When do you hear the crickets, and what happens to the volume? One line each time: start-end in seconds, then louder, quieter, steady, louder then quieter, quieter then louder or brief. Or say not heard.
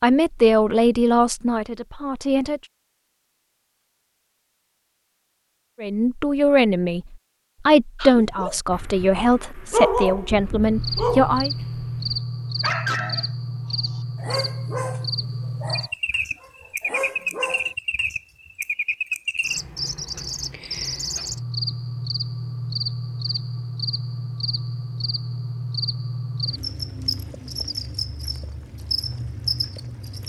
10.7-30.2 steady.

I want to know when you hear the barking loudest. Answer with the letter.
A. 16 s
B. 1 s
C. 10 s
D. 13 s
C.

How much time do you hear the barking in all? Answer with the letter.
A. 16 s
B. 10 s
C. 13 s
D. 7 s
B.